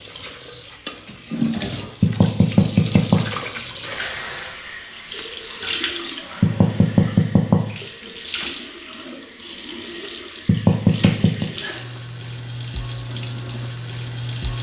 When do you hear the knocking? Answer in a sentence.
You can hear the knocking from 2.0 to 3.2 s, from 6.4 to 7.6 s and from 10.4 to 11.5 s.